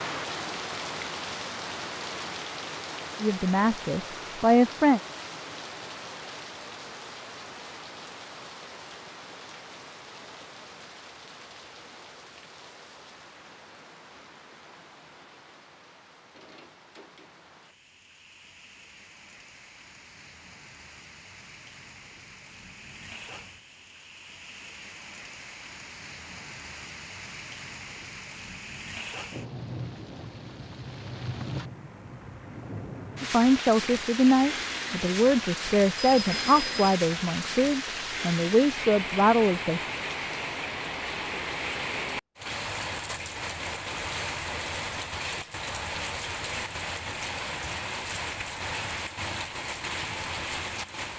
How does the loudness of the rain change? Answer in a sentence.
The loudness of the rain goes down, then up.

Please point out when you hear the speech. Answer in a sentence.
You can hear the speech from 3.2 to 5.0 s and from 33.2 to 39.8 s.